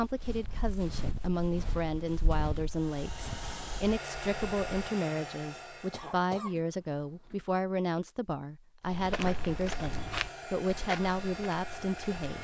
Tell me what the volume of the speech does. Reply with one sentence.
The volume of the speech stays about the same.